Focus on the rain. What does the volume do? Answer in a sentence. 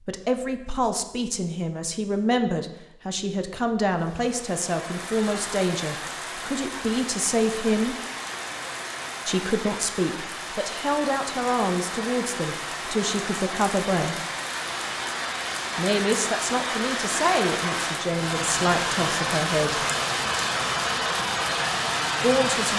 The loudness of the rain goes up.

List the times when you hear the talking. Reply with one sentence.
The talking can be heard from 0.1 to 8.0 s, from 9.2 to 14.2 s, from 15.8 to 19.9 s and from 22.2 to 22.7 s.